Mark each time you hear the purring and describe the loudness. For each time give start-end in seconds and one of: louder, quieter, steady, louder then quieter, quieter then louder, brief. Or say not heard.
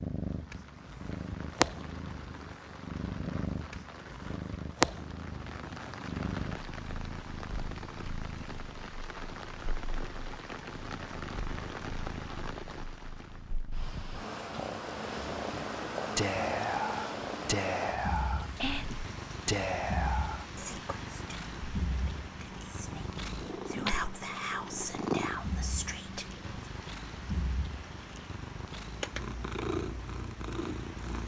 0.0-31.2 quieter then louder.